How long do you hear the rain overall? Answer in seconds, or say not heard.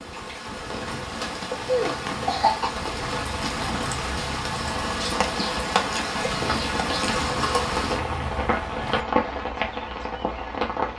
11 s.